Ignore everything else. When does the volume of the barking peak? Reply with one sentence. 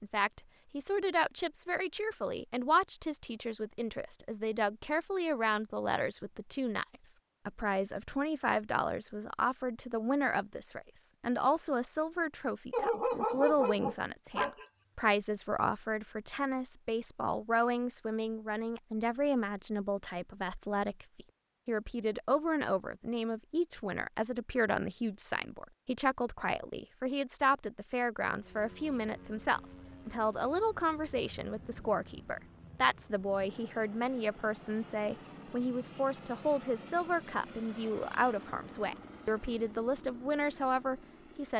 The volume of the barking peaks at 13 seconds.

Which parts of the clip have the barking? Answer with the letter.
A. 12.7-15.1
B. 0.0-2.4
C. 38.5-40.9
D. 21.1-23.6
A.